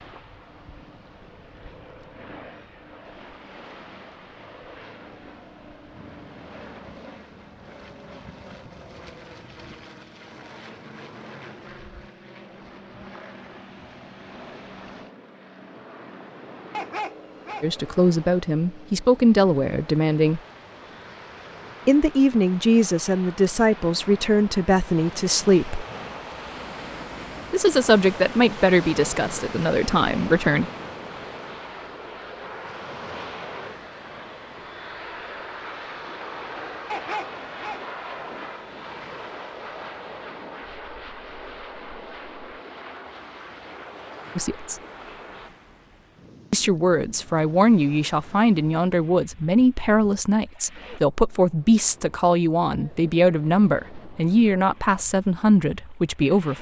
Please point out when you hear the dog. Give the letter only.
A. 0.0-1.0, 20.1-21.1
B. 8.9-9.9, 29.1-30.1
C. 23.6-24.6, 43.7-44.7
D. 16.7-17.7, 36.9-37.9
D.